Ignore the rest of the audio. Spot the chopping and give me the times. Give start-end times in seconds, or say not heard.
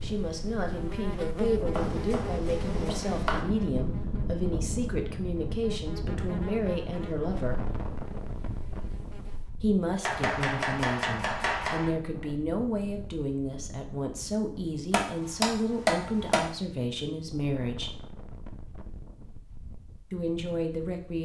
1.8-3.4, 10.0-11.9, 14.9-16.4.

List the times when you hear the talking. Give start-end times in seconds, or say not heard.
0.0-7.7, 9.6-17.9, 20.1-21.2.